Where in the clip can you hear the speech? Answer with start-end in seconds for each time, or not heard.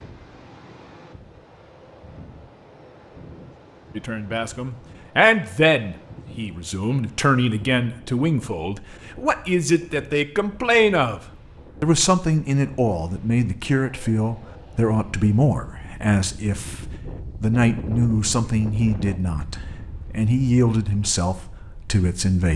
4.0-11.2, 11.8-22.5.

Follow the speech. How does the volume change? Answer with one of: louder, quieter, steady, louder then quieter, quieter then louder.
steady.